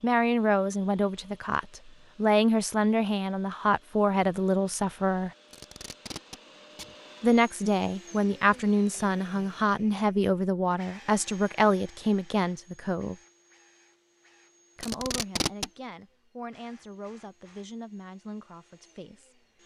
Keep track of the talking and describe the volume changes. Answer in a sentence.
The loudness of the talking goes down.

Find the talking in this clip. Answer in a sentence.
You can hear the talking from 0.0 to 5.3 s, from 7.2 to 13.2 s and from 14.8 to 19.6 s.